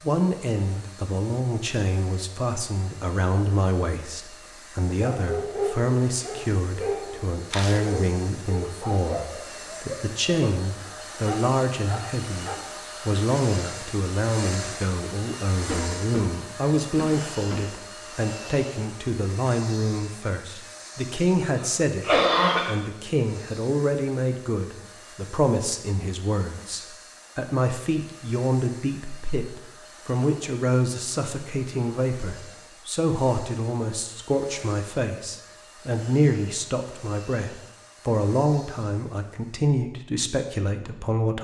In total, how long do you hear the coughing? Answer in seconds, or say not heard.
3 s.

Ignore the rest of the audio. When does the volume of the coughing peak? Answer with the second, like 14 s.
22 s.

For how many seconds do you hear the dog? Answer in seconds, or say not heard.
8 s.